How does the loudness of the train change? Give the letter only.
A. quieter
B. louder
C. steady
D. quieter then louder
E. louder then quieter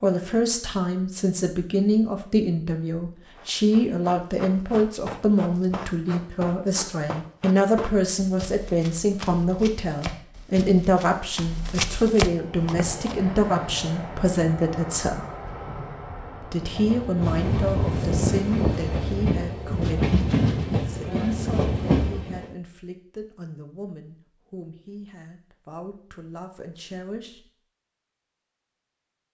B.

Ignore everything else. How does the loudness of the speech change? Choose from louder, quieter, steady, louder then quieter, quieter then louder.
quieter.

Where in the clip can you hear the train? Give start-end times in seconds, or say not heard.
12.3-22.5.